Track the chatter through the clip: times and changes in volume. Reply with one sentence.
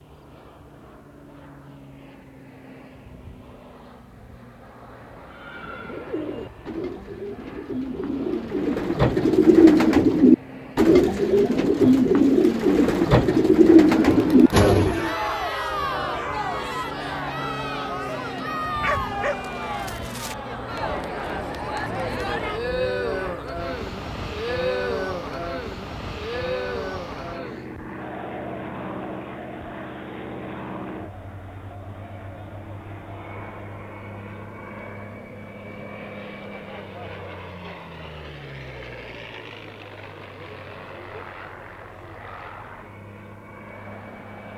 The chatter can be heard from 13.9 to 44.5 s, getting quieter.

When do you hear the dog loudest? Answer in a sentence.
The loudest moment of the dog is at 19 seconds.